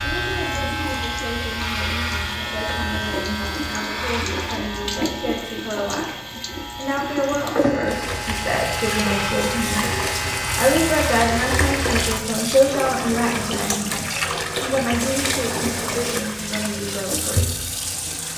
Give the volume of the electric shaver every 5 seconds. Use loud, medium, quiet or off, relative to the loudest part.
loud, loud, loud, off.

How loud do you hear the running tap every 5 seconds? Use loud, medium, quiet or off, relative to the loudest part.
medium, loud, loud, loud.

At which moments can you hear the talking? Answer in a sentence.
The talking can be heard from 0.0 to 9.9 s and from 10.6 to 17.7 s.